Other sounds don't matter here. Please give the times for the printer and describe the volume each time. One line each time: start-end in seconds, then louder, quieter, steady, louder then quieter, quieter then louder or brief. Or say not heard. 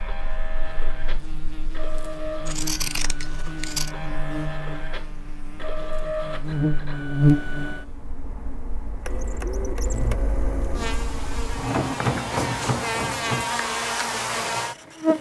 0.0-15.1 louder.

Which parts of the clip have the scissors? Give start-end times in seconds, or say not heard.
2.5-4.0.